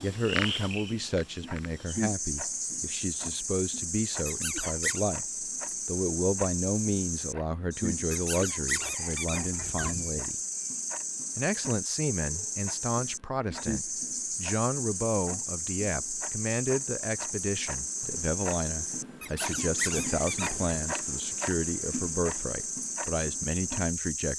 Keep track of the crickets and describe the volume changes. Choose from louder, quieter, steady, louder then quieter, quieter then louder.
steady.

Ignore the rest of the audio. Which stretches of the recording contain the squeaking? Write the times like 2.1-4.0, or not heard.
4.2-5.0, 8.1-10.2, 19.2-20.8.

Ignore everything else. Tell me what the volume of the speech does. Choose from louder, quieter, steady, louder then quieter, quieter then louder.
steady.